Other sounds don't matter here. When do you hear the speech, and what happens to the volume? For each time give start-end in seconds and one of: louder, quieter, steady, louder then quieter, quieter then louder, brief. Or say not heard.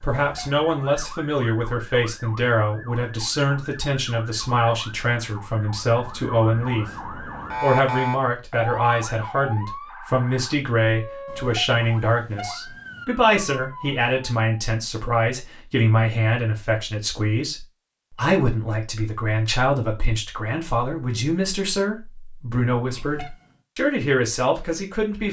0.0-6.9 steady
7.6-25.2 steady.